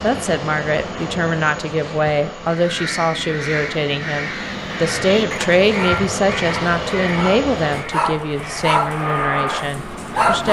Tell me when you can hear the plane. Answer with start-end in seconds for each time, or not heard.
0.0-10.3.